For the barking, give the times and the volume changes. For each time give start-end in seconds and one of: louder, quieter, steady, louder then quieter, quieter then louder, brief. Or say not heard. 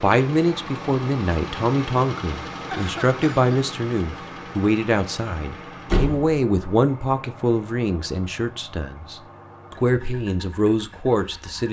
not heard.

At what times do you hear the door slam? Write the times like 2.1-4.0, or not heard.
5.8-6.4.